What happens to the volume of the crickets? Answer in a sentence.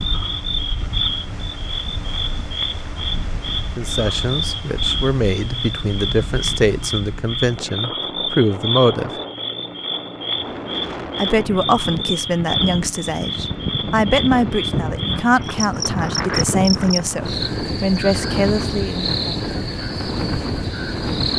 The loudness of the crickets stays about the same.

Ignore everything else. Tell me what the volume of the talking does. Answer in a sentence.
The loudness of the talking stays about the same.